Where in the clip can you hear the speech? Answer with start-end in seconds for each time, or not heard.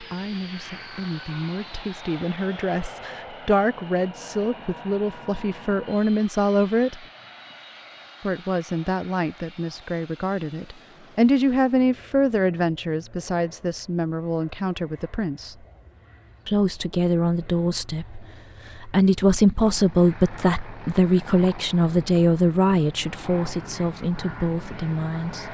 0.0-7.0, 8.2-15.6, 16.4-25.4.